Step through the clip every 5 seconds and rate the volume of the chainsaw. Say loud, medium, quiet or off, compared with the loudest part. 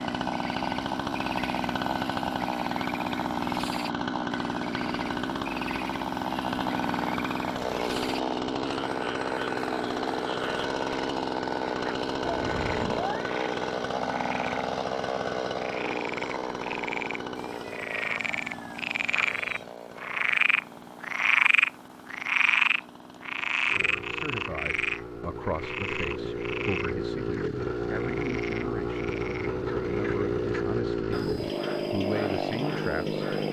loud, loud, loud, medium, quiet, loud, loud.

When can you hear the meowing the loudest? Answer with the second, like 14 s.
13 s.